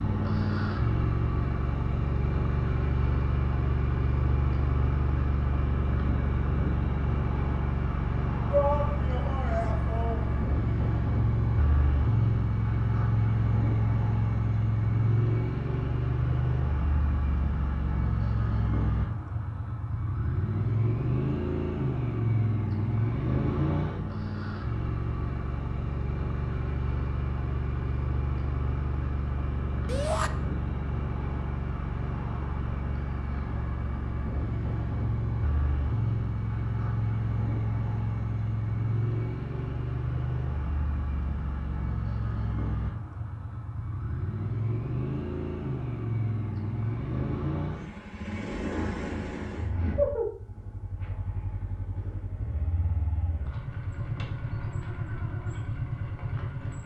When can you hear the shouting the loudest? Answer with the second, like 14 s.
9 s.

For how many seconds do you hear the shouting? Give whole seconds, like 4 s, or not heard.
2 s.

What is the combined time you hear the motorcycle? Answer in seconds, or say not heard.
57 s.